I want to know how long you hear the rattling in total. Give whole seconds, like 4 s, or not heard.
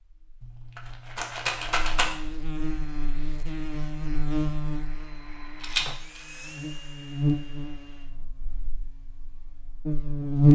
2 s.